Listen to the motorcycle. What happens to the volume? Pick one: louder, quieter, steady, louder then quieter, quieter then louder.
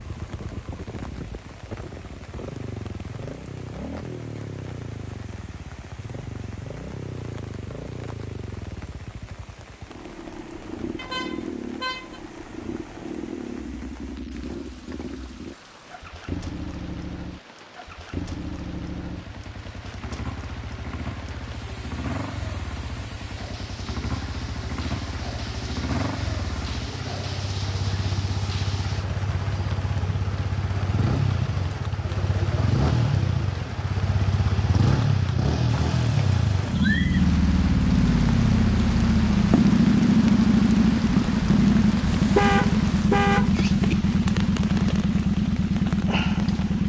louder.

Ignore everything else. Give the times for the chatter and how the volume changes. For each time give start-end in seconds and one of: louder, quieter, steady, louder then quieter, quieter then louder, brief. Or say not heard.
not heard.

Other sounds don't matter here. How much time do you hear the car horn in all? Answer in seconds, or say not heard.
3 s.